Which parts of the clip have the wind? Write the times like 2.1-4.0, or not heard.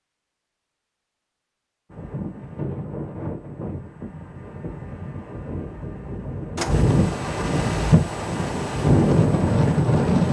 1.9-10.2.